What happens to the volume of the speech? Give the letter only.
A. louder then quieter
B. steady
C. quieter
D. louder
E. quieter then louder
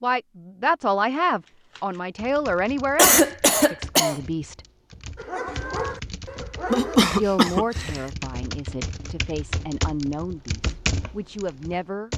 C.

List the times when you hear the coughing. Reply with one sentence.
The coughing can be heard from 3.0 to 4.2 s and from 6.7 to 8.0 s.